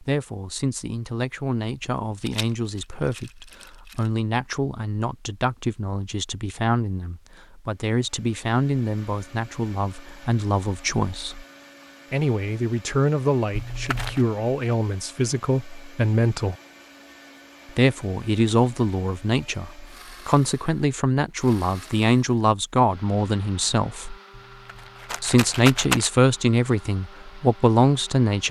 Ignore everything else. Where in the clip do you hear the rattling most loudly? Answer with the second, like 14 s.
26 s.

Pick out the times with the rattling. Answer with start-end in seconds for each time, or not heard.
2.2-4.1, 13.5-14.2, 24.4-26.1.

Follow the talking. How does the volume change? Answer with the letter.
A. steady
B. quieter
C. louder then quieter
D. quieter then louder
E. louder
E.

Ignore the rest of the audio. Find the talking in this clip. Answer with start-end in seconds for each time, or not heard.
0.0-11.4, 12.1-16.6, 17.8-24.1, 25.2-28.4.